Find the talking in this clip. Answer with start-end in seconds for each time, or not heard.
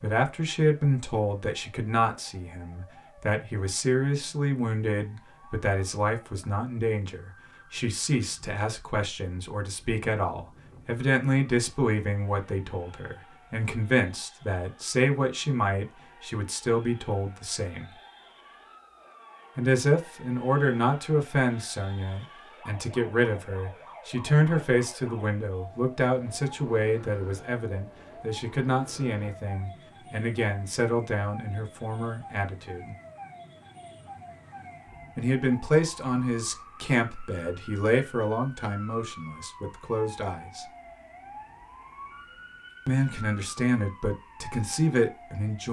0.0-17.9, 19.6-33.0, 35.1-40.6, 42.9-45.6.